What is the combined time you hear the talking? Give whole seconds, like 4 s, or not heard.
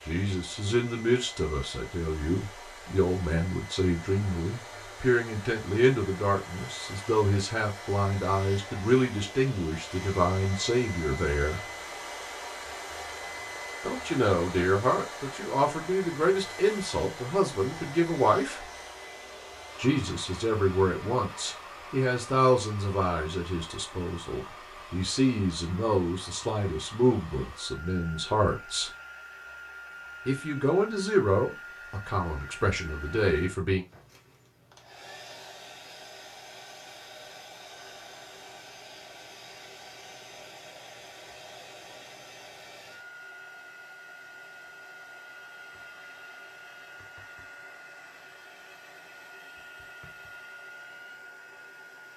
29 s.